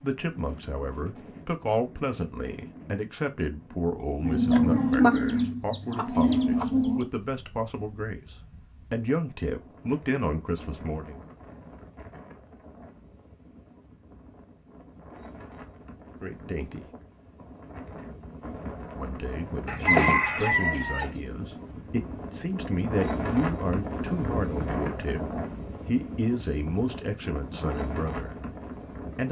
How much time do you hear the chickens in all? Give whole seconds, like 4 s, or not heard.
4 s.